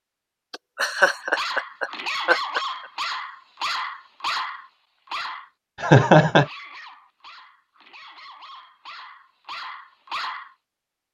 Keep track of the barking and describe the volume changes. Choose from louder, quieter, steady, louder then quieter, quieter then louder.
quieter then louder.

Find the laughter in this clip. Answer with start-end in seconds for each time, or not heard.
0.5-2.6, 5.8-6.5.